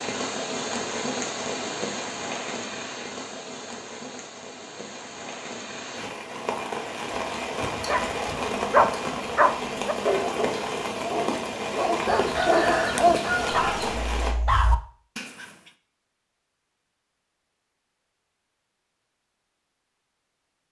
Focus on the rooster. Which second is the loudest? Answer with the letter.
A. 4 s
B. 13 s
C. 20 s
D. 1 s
B.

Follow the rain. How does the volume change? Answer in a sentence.
The loudness of the rain goes down, then up.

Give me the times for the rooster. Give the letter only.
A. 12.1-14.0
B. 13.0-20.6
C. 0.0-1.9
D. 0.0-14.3
A.